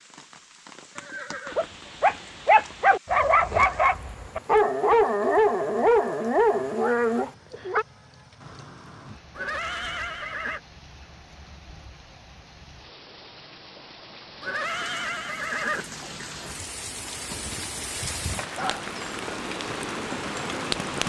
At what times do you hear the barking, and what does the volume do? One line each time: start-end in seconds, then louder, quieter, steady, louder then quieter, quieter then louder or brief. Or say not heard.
1.5-7.8 steady
18.4-18.9 brief.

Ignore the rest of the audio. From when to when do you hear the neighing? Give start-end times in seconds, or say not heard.
0.9-1.7, 9.3-10.6, 14.4-15.8.